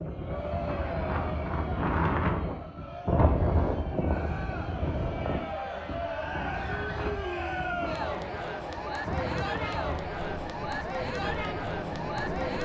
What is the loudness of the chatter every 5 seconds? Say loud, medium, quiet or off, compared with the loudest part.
medium, loud, loud.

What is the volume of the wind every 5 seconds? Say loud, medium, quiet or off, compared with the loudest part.
loud, medium, medium.